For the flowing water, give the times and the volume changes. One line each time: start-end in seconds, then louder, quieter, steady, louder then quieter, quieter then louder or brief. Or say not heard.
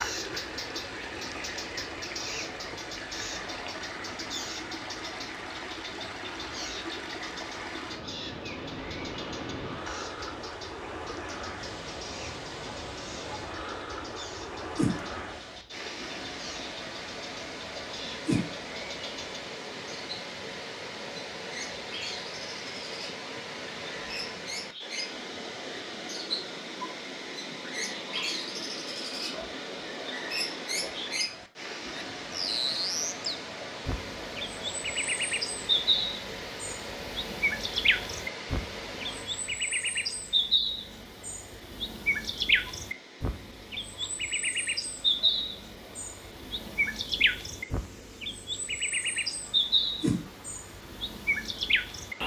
0.0-52.2 quieter.